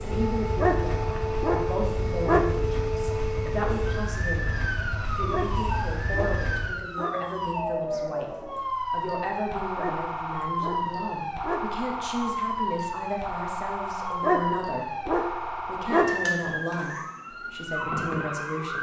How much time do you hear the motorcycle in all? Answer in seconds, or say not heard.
7 s.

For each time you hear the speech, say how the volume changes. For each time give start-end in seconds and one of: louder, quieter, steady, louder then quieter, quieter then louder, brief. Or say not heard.
0.0-18.7 steady.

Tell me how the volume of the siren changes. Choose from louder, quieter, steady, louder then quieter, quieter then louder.
steady.